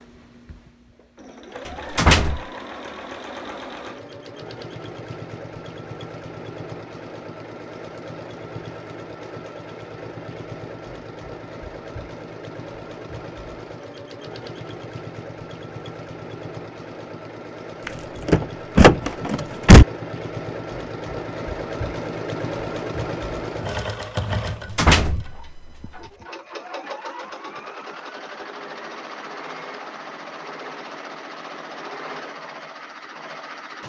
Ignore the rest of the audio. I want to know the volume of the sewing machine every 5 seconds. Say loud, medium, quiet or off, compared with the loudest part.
medium, medium, medium, medium, loud, medium, medium.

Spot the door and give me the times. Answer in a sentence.
The door can be heard from 1.9 to 2.4 s, from 17.9 to 19.9 s and from 24.8 to 25.4 s.